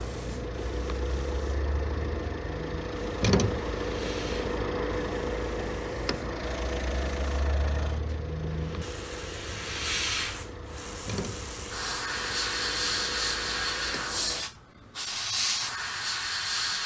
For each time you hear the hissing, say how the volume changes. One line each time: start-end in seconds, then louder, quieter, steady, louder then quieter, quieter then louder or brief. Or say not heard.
0.0-16.8 louder.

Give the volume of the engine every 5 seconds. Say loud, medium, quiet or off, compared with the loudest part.
loud, loud, medium, off.